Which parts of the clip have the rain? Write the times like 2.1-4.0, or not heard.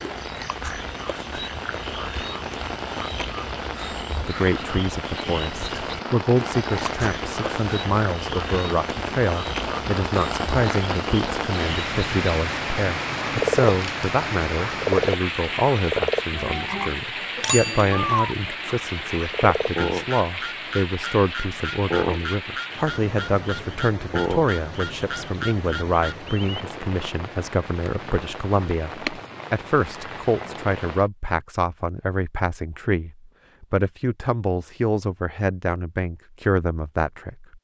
0.0-31.1.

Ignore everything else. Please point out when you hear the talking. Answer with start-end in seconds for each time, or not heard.
4.2-37.5.